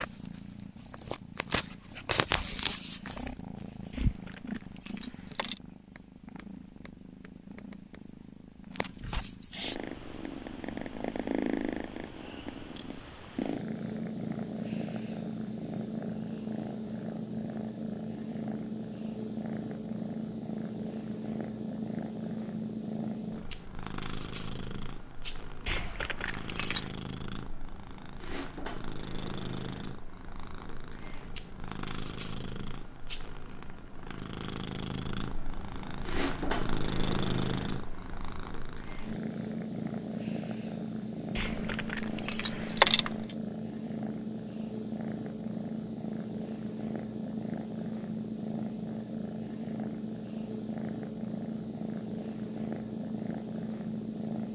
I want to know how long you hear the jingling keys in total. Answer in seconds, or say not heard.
5 s.